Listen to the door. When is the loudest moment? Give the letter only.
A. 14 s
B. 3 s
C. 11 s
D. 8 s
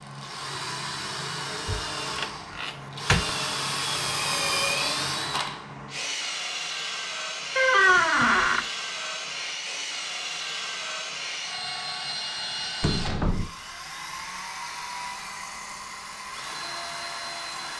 D.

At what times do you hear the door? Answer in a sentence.
The door can be heard from 1.6 to 3.3 s, from 7.5 to 8.7 s and from 12.8 to 13.5 s.